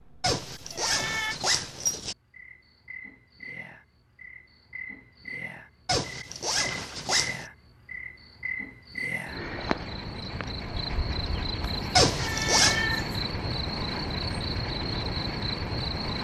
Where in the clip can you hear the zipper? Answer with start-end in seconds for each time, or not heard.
0.2-2.1, 5.8-7.5, 11.9-12.8.